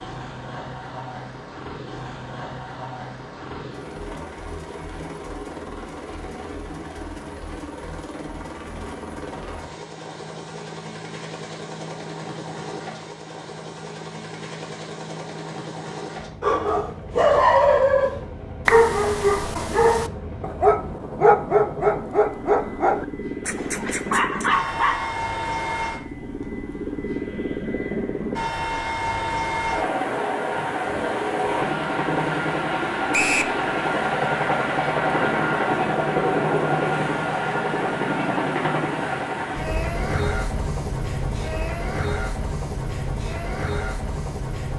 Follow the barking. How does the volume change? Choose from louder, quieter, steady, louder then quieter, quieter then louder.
quieter.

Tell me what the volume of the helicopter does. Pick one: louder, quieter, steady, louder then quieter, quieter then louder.
louder.